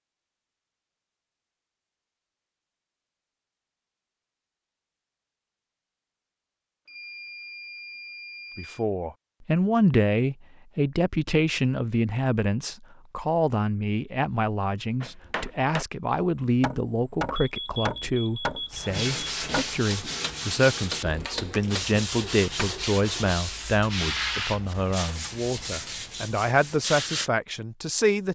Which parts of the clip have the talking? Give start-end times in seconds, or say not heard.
8.6-28.3.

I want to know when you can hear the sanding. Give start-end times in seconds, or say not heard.
18.7-27.3.